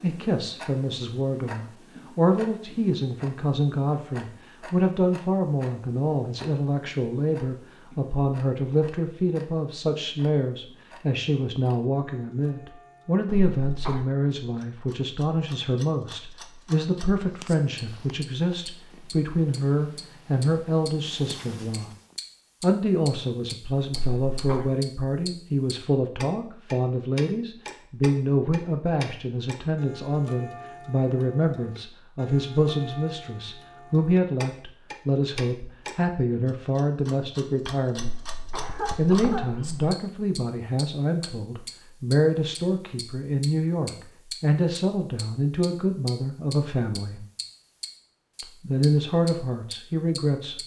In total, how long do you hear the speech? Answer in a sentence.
The speech can be heard for 48 seconds in total.